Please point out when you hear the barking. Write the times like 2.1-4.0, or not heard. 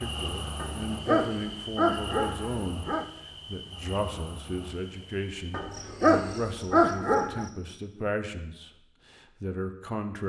0.6-3.1, 5.5-7.5.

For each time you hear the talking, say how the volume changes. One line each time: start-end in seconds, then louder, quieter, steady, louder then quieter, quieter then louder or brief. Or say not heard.
0.0-10.2 steady.